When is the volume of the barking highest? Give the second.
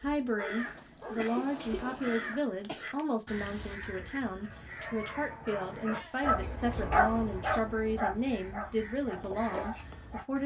7 s.